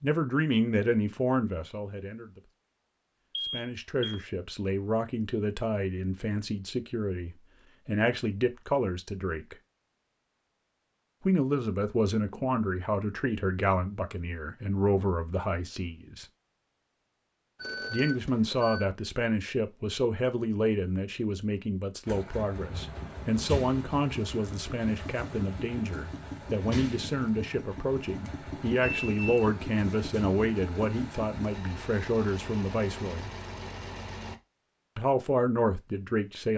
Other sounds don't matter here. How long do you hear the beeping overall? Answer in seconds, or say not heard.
3 s.